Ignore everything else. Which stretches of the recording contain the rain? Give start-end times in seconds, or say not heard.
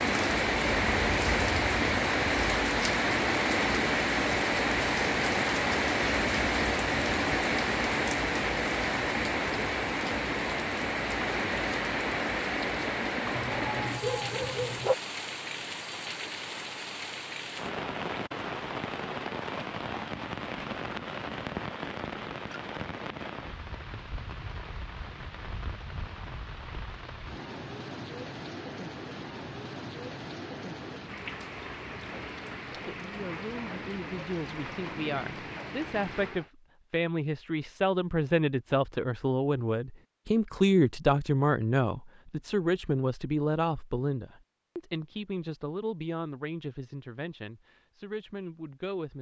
0.0-36.5.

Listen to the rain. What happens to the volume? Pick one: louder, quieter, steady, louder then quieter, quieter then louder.
quieter.